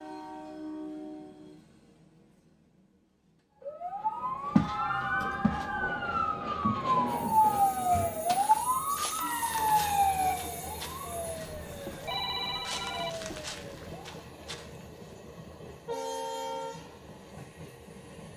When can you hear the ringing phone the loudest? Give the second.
12 s.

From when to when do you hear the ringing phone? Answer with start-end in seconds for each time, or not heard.
11.7-14.0.